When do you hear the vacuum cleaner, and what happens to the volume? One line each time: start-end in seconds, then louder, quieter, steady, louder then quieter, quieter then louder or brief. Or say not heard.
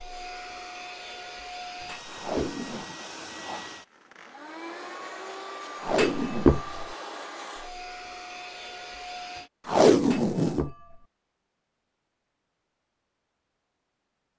0.0-9.5 steady.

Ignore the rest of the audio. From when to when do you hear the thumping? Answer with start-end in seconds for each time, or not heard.
1.8-2.6, 5.8-6.8, 10.0-11.0.